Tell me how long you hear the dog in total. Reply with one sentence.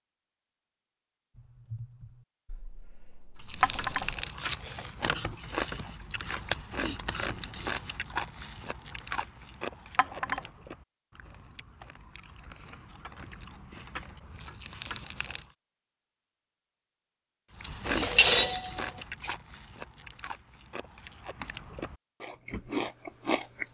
You can't hear the dog here.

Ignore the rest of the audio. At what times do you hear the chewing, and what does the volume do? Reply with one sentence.
The chewing can be heard from 3.5 to 15.4 s, getting quieter then louder; and from 17.6 to 23.6 s, getting quieter then louder.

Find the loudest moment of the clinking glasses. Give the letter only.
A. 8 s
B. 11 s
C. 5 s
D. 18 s
D.